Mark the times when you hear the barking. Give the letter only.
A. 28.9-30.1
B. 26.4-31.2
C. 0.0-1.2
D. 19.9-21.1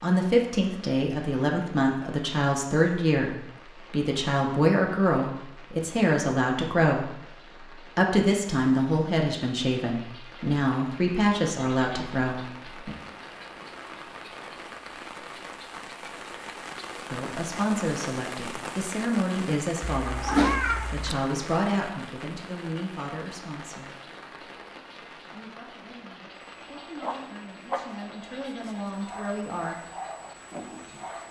B.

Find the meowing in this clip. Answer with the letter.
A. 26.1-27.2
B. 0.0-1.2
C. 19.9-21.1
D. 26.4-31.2
C.